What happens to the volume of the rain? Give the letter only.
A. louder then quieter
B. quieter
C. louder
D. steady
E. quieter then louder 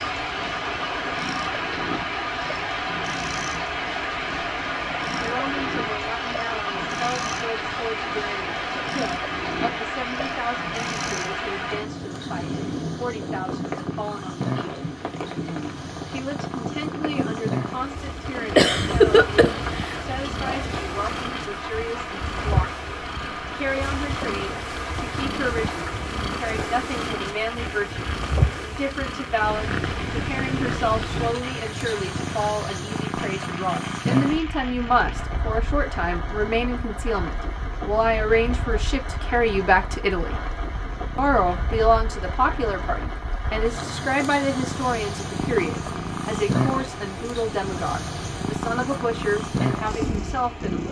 B.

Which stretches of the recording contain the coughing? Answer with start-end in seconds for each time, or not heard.
18.5-19.9.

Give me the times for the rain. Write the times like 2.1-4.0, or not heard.
0.0-50.8.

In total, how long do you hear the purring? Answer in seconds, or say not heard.
51 s.